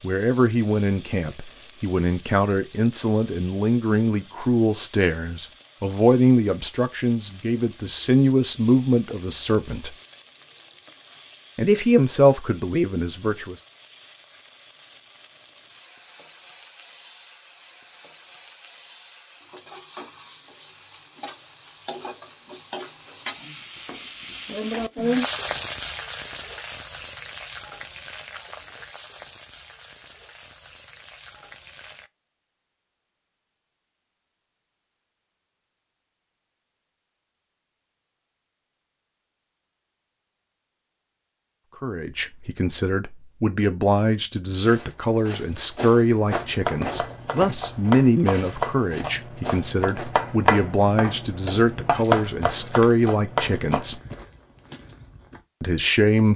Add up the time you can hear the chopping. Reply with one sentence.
You can hear the chopping for 8 seconds altogether.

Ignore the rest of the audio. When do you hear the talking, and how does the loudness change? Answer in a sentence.
You can hear the talking from 0.0 to 9.9 s, at a steady volume; briefly from 11.6 to 13.6 s; from 41.8 to 54.0 s, at a steady volume; and briefly from 55.6 to 56.3 s.